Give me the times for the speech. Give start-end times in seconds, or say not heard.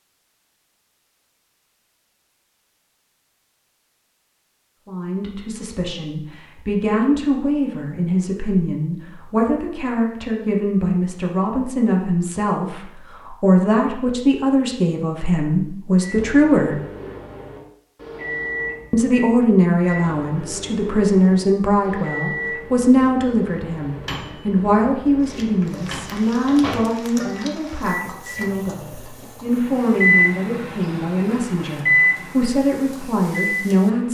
4.8-16.8, 18.9-34.1.